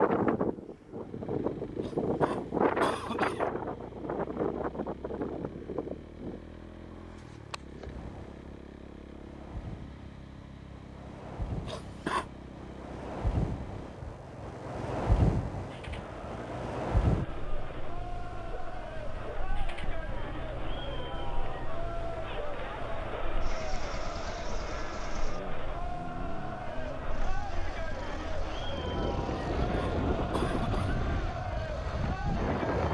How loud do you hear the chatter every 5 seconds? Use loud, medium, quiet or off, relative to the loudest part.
off, off, off, medium, loud, loud, loud.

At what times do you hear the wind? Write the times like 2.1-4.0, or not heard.
0.0-32.9.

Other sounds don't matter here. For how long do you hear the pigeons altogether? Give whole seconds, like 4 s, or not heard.
not heard.